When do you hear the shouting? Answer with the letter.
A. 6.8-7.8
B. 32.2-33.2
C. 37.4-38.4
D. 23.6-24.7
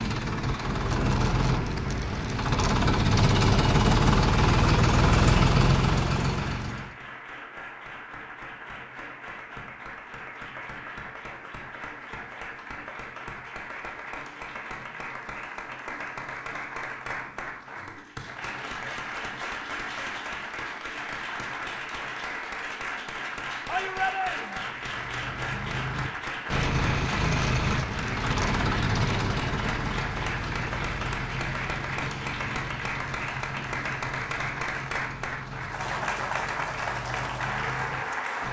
D.